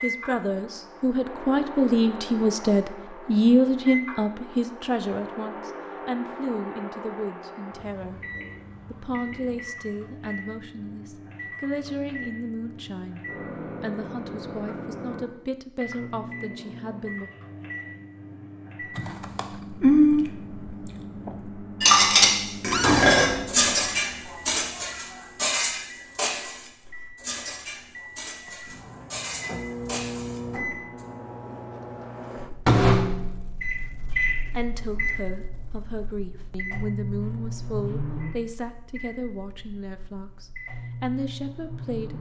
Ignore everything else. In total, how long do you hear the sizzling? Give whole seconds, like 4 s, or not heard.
not heard.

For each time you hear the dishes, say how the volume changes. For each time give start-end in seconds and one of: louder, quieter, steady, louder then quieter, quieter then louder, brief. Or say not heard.
21.8-31.1 quieter.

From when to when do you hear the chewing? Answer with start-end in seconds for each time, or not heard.
18.9-21.4.